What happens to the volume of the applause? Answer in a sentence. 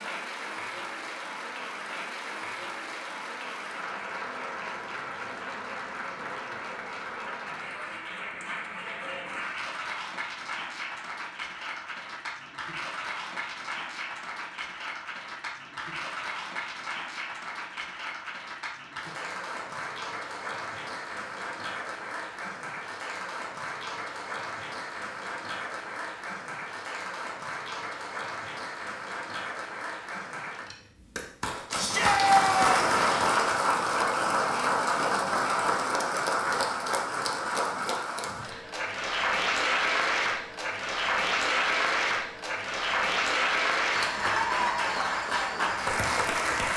The volume of the applause goes up.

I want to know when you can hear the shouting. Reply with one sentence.
You can hear the shouting from 31.8 to 32.8 s.